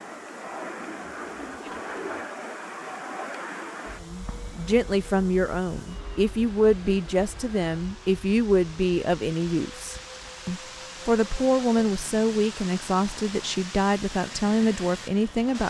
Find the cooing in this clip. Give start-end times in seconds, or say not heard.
0.9-2.4.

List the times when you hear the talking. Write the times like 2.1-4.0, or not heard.
4.0-15.6.